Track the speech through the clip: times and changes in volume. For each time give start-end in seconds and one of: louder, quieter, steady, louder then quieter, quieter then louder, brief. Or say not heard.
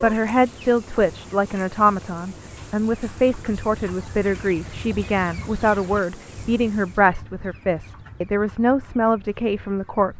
0.0-10.1 steady.